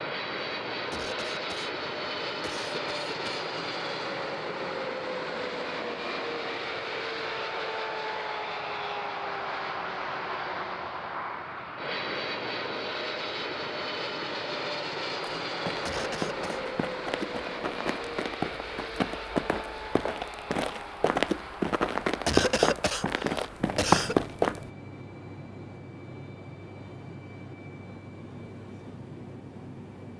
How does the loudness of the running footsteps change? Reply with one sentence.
The loudness of the running footsteps goes up.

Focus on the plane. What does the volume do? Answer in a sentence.
The loudness of the plane goes down.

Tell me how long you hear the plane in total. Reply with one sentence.
You can hear the plane for 30 seconds altogether.